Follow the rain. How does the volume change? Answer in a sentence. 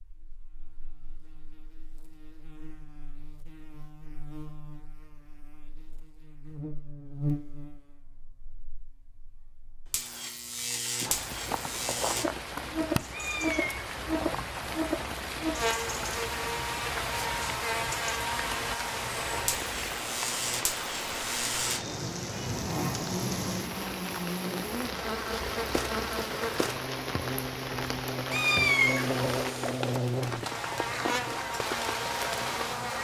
The loudness of the rain stays about the same.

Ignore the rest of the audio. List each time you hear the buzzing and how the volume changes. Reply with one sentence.
The buzzing can be heard from 0.0 to 32.9 s, getting louder.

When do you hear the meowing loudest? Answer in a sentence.
The volume of the meowing peaks at 29 seconds.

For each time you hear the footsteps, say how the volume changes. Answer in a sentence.
You can't hear the footsteps here.